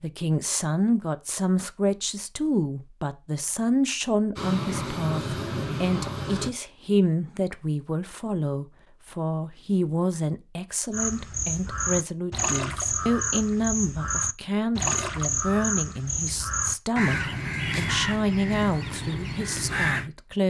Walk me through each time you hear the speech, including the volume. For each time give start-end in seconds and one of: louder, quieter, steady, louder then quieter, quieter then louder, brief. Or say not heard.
0.0-20.4 steady.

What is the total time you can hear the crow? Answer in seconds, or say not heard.
9 s.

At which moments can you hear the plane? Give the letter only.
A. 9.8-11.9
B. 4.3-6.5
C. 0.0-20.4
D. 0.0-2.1
B.